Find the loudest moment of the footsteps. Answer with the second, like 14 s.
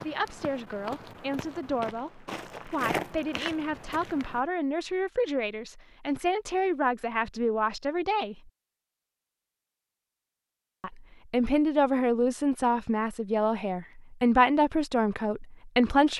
3 s.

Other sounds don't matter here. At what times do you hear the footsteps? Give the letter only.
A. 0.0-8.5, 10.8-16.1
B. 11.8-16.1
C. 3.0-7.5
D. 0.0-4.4
D.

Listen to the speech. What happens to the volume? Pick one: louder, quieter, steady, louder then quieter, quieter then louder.
louder.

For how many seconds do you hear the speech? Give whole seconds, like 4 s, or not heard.
14 s.